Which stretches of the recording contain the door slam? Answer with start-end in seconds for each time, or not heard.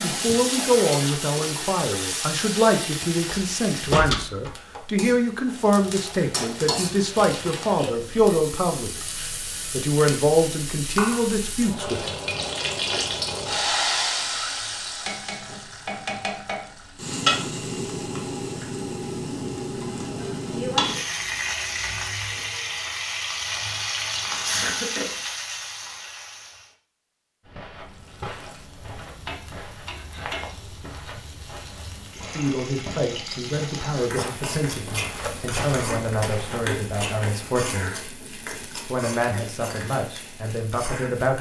3.2-4.8.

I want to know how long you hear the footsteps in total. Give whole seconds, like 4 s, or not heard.
10 s.